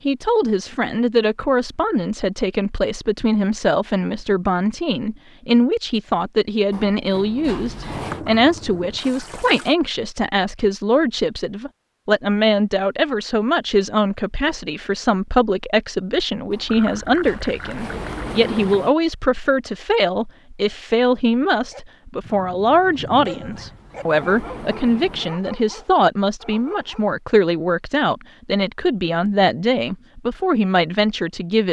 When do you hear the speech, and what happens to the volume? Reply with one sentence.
You can hear the speech from 0.1 to 31.6 s, at a steady volume.